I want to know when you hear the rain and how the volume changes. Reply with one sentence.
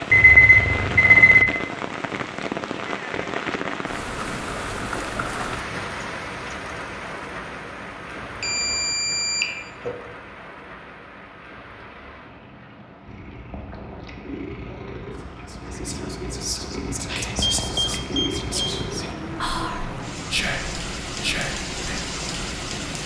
You can hear the rain from 0.0 to 23.0 s, getting quieter then louder.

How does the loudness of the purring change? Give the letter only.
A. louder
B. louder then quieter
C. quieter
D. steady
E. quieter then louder
A.